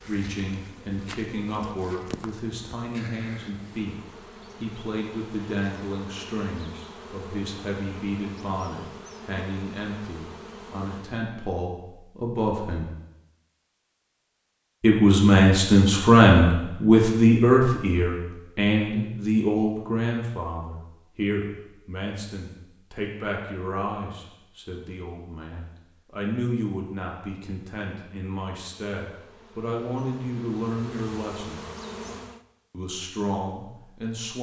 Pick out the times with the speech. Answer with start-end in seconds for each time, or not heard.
0.1-4.0, 4.6-12.9, 14.8-31.6, 32.7-34.3.